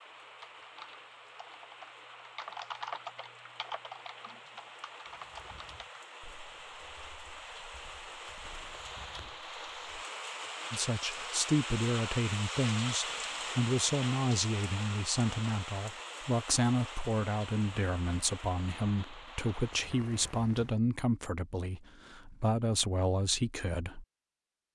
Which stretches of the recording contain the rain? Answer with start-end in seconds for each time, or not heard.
0.0-20.8.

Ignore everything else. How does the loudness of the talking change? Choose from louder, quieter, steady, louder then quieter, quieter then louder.
steady.